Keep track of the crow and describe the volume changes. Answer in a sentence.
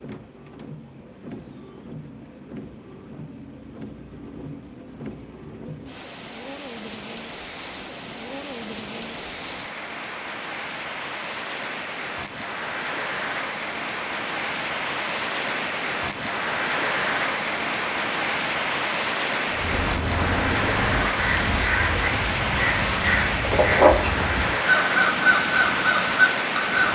The loudness of the crow goes up.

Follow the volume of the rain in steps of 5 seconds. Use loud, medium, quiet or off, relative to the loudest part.
quiet, medium, medium, loud, loud, loud.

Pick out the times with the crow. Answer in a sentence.
The crow can be heard from 19.4 to 26.9 s.